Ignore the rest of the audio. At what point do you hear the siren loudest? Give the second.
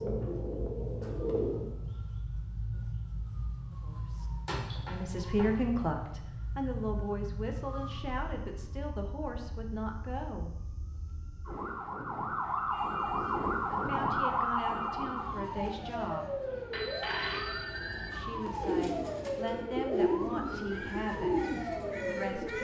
14 s.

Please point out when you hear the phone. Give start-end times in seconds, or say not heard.
16.7-18.2.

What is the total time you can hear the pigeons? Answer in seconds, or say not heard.
6 s.